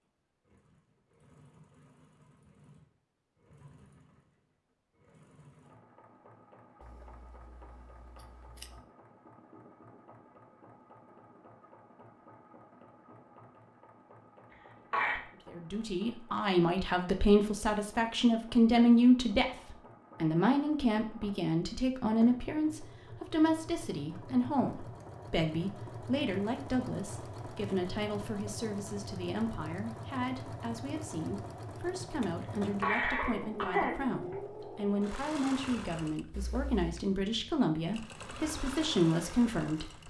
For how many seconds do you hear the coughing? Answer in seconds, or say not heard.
2 s.